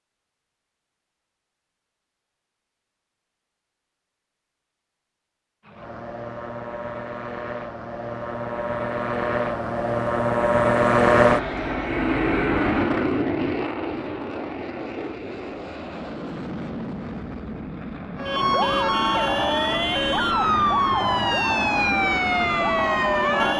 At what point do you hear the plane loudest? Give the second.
11 s.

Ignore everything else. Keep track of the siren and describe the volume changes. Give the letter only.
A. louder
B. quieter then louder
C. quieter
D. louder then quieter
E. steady
E.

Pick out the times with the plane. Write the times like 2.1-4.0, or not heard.
5.7-23.5.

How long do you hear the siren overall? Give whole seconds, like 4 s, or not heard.
5 s.